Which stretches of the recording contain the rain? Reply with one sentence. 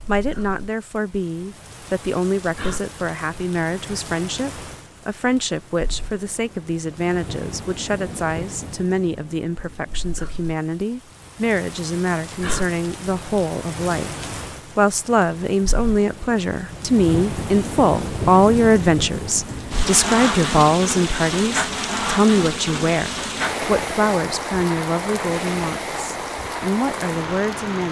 The rain can be heard from 0.0 to 27.8 s.